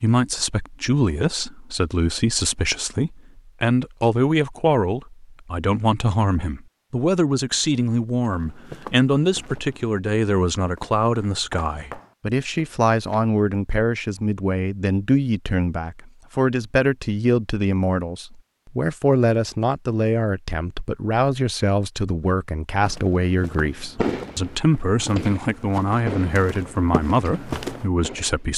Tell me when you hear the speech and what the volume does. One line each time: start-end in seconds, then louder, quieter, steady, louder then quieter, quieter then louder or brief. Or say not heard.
0.0-28.5 steady.